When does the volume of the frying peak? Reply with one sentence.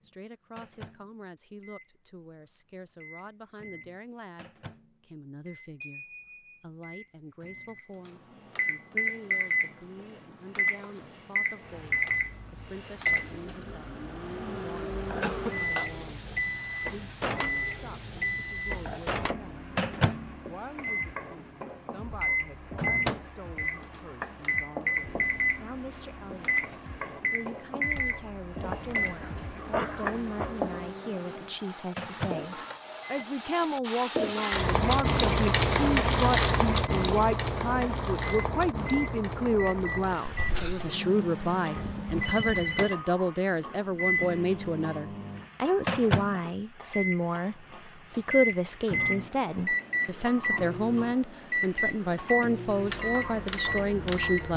The volume of the frying peaks at 36 seconds.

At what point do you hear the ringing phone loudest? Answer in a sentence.
The loudest moment of the ringing phone is at 42 seconds.